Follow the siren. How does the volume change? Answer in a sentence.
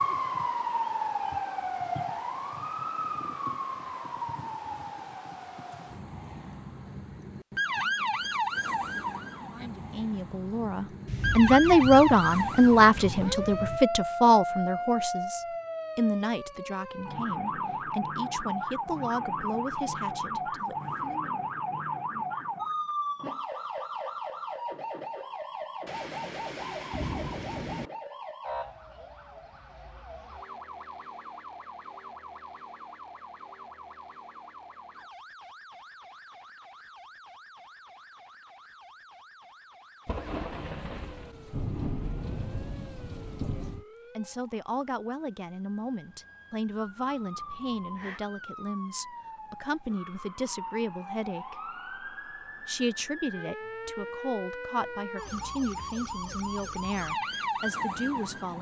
The volume of the siren goes down, then up.